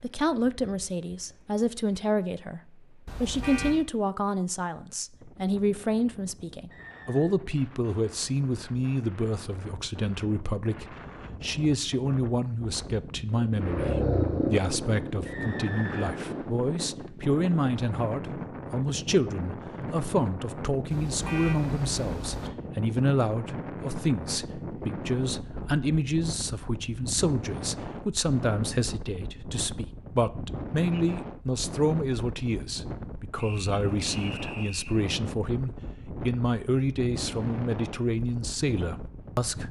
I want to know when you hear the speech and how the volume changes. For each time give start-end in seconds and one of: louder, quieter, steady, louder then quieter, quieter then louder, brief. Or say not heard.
0.0-39.6 steady.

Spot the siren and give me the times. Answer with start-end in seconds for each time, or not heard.
not heard.